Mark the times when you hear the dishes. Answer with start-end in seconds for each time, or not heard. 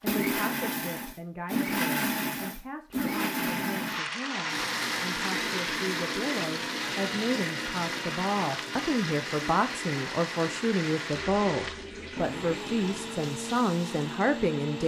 not heard.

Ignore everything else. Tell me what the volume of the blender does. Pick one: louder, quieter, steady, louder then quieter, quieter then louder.
quieter.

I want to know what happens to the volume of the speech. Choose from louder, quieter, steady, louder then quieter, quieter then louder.
louder.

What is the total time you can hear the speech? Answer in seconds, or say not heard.
15 s.